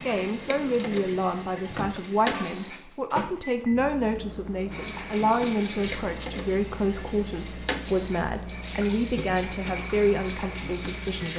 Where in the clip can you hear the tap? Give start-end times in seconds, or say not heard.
0.0-3.1, 4.7-11.3.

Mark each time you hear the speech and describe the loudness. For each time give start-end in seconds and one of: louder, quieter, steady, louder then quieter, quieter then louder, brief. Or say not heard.
0.0-11.3 steady.